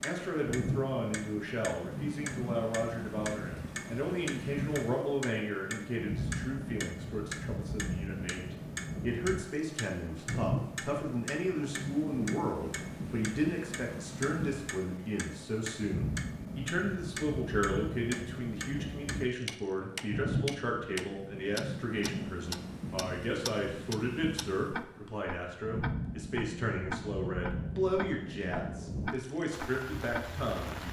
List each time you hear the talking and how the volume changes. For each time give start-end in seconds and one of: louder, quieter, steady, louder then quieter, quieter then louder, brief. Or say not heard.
0.0-30.8 steady.